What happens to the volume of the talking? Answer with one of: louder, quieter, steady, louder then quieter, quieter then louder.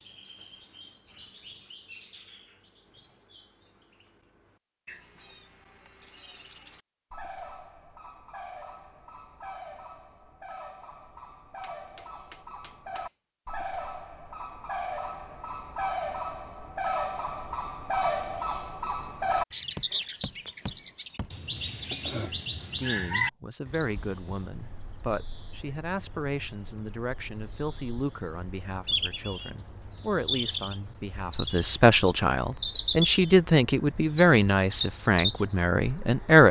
louder.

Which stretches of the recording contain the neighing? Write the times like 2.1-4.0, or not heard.
not heard.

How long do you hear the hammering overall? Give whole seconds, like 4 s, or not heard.
3 s.